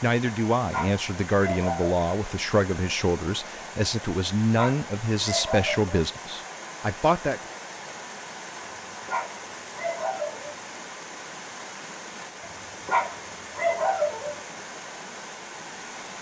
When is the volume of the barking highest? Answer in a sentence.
The loudest moment of the barking is at 14 seconds.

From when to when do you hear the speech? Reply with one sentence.
The speech can be heard from 0.0 to 7.4 s.